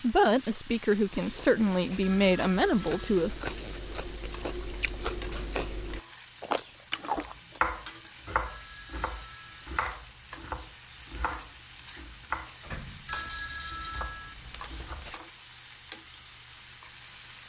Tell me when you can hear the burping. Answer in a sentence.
You can't hear the burping here.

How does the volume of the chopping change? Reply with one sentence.
The volume of the chopping goes down.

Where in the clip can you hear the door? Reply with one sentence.
The door can be heard from 12.6 to 13.3 s.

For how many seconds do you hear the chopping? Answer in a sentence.
The chopping can be heard for 8 seconds in total.